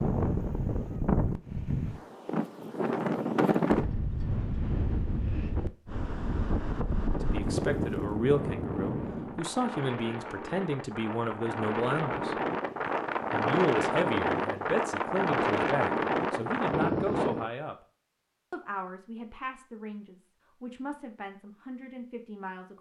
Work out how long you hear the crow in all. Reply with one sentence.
The crow can't be heard in this clip.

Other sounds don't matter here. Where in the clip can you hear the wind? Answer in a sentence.
The wind can be heard from 0.0 to 17.5 s.